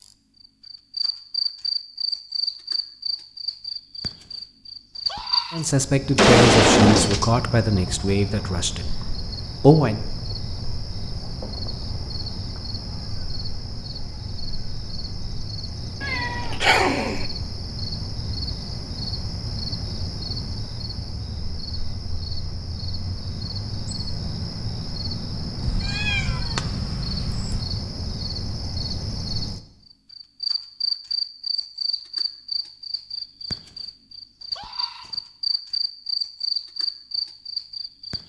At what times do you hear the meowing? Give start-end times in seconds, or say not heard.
6.2-7.3, 16.0-17.2, 25.6-27.6.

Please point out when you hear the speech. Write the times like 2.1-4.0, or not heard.
5.5-9.0, 9.6-10.0.